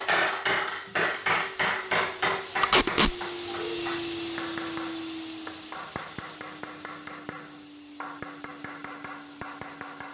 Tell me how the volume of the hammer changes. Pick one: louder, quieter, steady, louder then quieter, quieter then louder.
quieter.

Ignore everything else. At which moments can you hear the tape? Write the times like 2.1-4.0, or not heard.
2.6-3.1.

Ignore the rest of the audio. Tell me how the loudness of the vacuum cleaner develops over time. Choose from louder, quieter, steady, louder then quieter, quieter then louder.
louder then quieter.